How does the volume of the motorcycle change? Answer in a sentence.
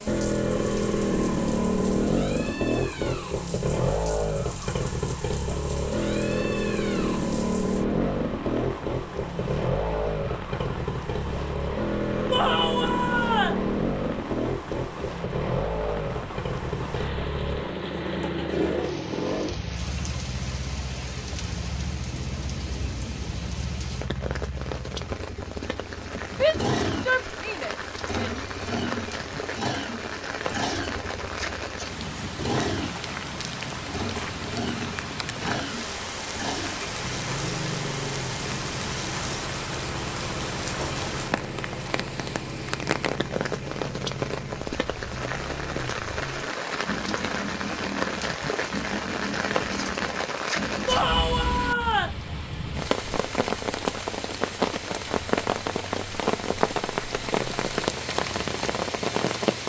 The volume of the motorcycle goes down.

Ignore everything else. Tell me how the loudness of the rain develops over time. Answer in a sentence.
The loudness of the rain goes up.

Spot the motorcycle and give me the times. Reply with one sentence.
The motorcycle can be heard from 0.0 to 59.6 s.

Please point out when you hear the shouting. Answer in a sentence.
The shouting can be heard from 12.3 to 13.7 s, from 26.3 to 28.4 s and from 50.9 to 52.1 s.